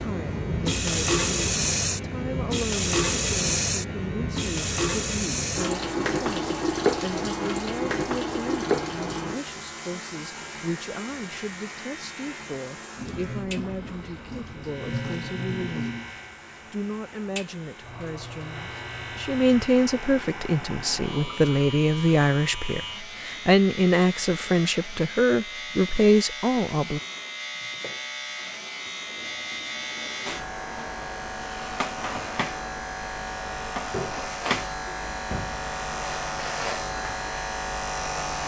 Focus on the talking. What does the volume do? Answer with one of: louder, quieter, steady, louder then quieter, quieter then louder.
louder.